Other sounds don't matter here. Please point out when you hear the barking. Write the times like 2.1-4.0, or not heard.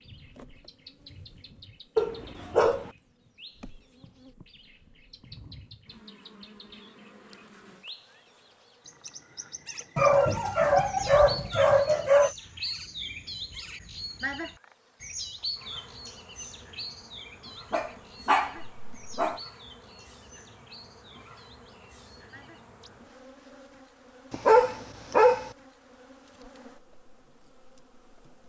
1.9-2.9, 9.9-12.3, 17.7-19.4, 24.3-25.5.